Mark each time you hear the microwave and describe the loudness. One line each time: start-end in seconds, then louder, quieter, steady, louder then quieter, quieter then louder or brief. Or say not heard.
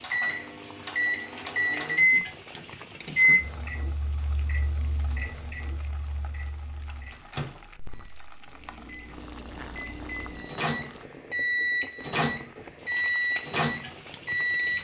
0.0-14.7 quieter then louder.